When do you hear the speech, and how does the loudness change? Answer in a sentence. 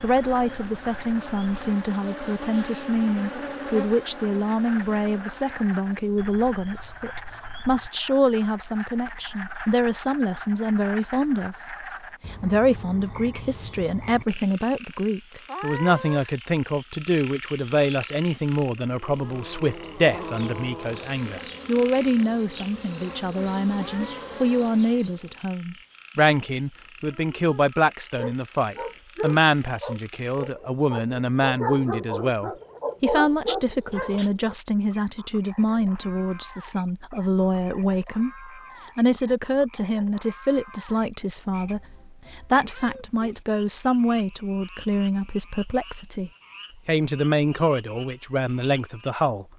You can hear the speech from 0.0 to 11.6 s, at a steady volume; and from 12.3 to 49.5 s, at a steady volume.